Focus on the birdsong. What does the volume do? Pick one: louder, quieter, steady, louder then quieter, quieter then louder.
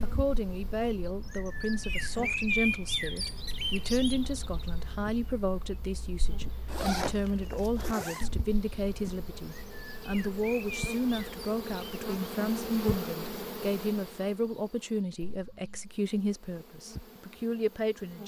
quieter then louder.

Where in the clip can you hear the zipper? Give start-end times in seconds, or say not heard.
6.7-8.3.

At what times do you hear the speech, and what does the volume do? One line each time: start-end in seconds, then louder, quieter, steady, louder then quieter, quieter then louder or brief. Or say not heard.
0.0-18.2 steady.